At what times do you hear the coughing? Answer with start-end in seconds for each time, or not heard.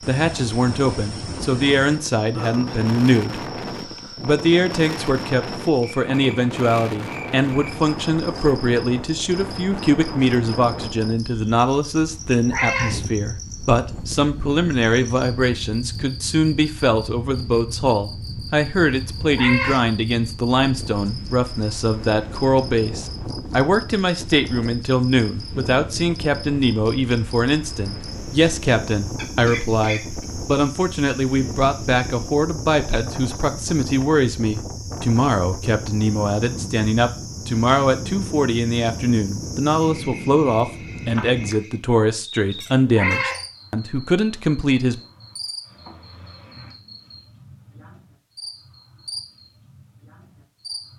29.1-30.2.